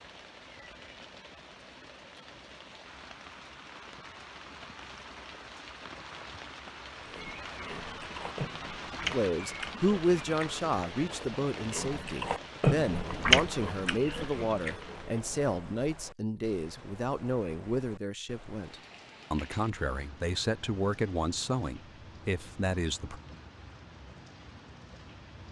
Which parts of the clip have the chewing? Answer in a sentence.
You can hear the chewing from 7.0 to 15.4 s.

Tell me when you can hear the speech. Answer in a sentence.
The speech can be heard from 9.1 to 23.2 s.